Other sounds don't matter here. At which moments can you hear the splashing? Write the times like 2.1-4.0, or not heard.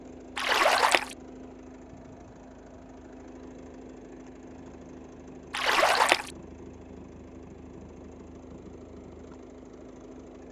0.3-1.1, 5.5-6.3.